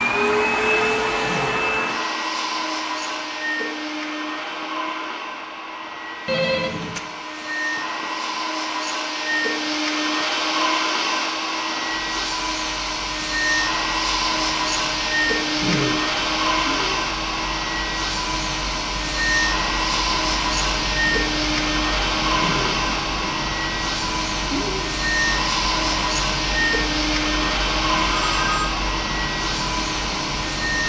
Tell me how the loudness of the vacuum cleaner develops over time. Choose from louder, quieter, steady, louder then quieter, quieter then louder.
steady.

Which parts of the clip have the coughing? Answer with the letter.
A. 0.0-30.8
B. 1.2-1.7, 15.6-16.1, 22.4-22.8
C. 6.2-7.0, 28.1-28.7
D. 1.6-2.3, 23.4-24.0
B.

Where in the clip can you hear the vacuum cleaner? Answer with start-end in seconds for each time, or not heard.
0.0-30.8.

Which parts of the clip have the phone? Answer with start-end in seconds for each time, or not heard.
6.2-7.0, 28.1-28.7.